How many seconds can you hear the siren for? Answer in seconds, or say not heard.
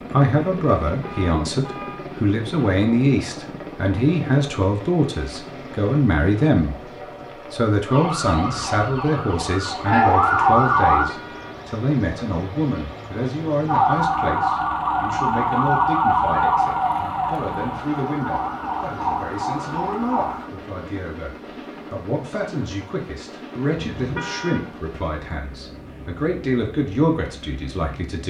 10 s.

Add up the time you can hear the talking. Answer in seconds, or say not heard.
28 s.